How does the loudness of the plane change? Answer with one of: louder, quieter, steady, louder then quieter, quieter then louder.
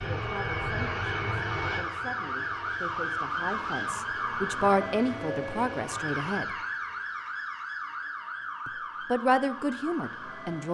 quieter.